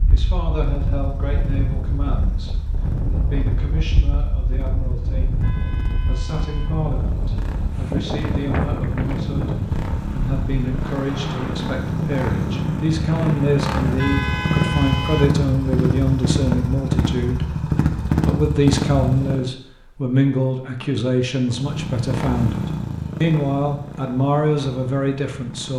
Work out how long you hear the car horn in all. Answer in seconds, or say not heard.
3 s.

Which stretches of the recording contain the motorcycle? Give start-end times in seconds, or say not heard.
0.0-19.5, 21.4-25.7.